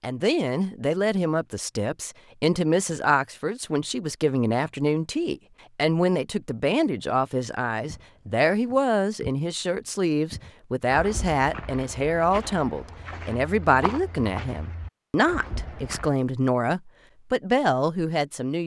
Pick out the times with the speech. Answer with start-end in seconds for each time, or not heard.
0.0-18.6.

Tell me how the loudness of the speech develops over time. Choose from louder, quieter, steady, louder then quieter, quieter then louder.
steady.